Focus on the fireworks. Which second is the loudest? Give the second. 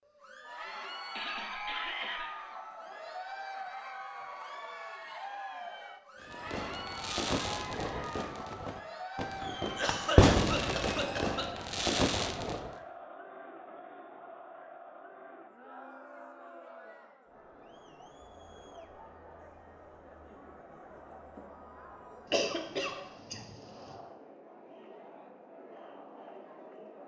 10 s.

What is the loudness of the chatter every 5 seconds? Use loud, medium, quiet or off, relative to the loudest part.
loud, loud, medium, medium, medium, medium.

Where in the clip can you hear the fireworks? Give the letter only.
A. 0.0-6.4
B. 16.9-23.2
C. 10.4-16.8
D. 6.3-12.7
D.